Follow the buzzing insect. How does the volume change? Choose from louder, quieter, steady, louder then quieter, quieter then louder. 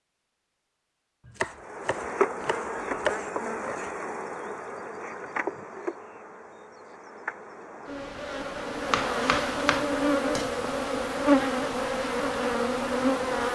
quieter then louder.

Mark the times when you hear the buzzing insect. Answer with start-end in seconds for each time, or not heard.
1.6-13.5.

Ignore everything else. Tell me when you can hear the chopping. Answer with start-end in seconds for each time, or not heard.
1.2-3.9, 8.8-10.7.